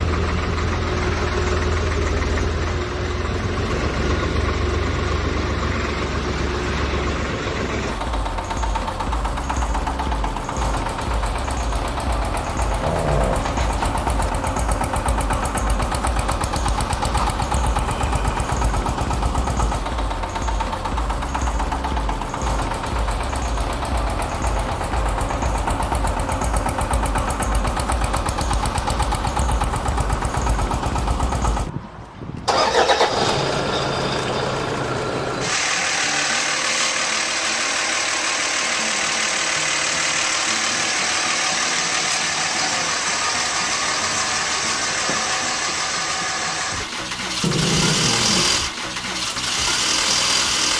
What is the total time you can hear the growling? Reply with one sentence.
You can hear the growling for 4 seconds altogether.